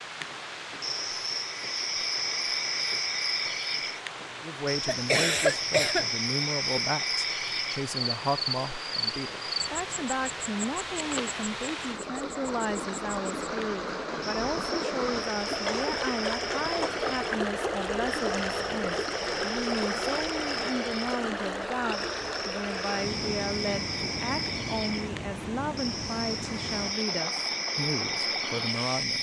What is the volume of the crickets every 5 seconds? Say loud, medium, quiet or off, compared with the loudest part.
loud, loud, medium, medium, medium, loud.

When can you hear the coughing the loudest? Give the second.
5 s.